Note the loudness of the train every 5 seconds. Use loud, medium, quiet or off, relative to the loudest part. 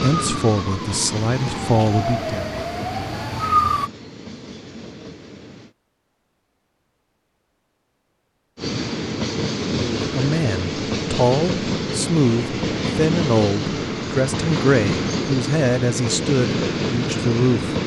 medium, loud, loud, loud.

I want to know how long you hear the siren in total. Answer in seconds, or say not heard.
4 s.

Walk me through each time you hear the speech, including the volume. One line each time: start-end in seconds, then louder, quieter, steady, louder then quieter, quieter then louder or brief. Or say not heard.
0.0-2.4 brief
9.7-17.8 steady.